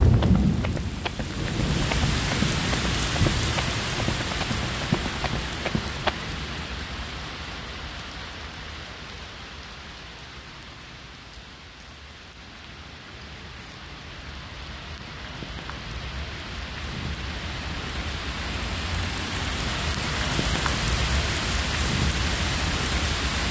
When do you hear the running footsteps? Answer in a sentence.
You can hear the running footsteps from 0.0 to 6.2 s.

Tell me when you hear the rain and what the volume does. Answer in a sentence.
You can hear the rain from 0.0 to 23.4 s, getting quieter then louder.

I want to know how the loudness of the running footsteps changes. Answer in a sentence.
The loudness of the running footsteps goes up.